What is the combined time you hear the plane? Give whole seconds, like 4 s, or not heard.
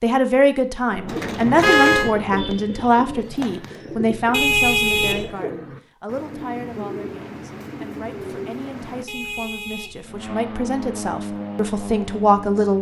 3 s.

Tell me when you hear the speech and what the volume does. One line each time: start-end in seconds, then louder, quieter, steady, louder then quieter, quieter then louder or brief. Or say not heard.
0.0-12.7 quieter then louder.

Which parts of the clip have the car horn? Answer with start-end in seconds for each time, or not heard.
1.6-2.1, 4.3-5.3, 9.1-10.2.